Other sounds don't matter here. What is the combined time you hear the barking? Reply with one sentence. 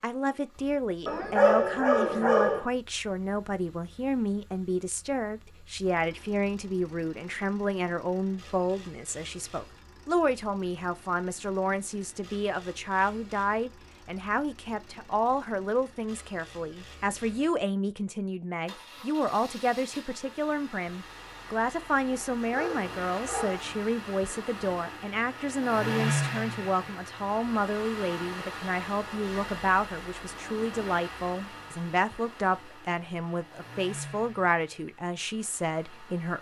You can hear the barking for 3 seconds altogether.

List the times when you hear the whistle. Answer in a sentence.
You can't hear the whistle here.